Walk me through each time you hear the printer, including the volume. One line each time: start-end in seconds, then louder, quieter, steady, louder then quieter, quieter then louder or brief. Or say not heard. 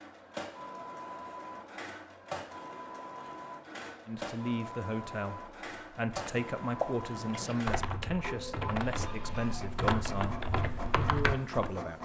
0.0-12.0 steady.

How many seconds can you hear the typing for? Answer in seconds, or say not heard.
6 s.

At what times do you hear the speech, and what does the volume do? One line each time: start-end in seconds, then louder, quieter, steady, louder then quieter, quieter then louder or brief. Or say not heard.
4.0-12.0 steady.